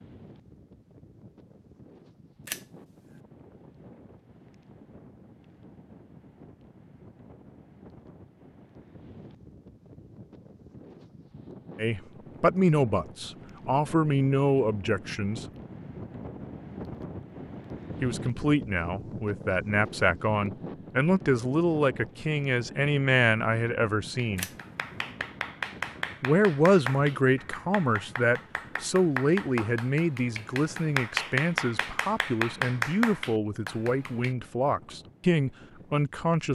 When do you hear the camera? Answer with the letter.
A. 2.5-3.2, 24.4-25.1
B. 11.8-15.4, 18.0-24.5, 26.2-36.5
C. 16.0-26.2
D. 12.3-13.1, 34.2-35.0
A.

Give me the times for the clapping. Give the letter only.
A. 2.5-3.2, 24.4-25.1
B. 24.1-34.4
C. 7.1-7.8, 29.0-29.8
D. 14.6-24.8
B.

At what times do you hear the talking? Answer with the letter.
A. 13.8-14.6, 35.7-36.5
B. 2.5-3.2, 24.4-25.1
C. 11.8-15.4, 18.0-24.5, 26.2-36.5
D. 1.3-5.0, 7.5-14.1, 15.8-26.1
C.